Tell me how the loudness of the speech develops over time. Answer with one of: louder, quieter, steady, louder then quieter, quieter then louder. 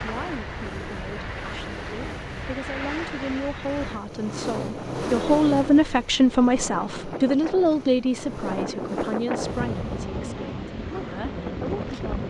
louder then quieter.